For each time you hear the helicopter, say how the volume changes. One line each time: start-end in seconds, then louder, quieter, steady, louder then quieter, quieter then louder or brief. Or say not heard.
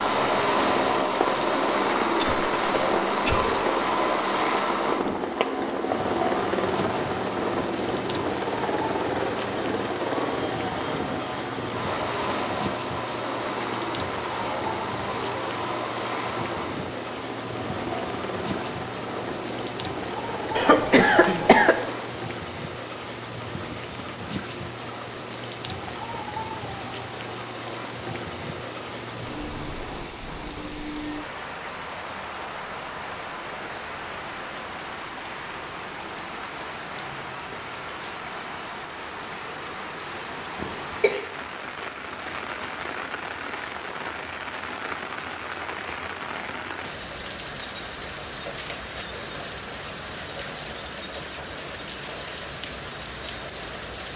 0.0-22.1 quieter.